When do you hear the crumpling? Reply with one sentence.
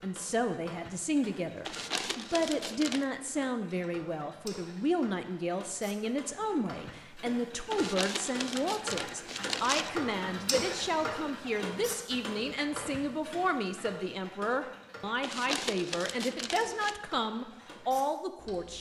You can hear the crumpling from 1.6 to 3.0 s, from 7.7 to 9.9 s and from 15.2 to 16.9 s.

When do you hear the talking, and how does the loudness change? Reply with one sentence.
The talking can be heard from 0.0 to 18.7 s, at a steady volume.